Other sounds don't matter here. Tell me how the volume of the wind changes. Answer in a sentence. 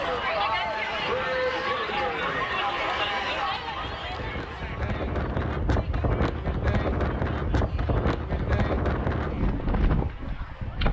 The loudness of the wind goes up.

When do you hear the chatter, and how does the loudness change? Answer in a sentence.
You can hear the chatter from 0.0 to 10.8 s, getting quieter.